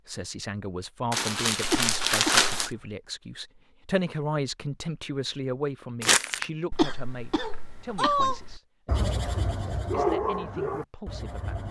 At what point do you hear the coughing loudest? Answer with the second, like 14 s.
7 s.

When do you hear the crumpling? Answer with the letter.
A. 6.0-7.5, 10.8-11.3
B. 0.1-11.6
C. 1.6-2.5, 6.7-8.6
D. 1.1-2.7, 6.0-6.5
D.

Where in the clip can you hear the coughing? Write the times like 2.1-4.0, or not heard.
1.6-2.5, 6.7-8.6.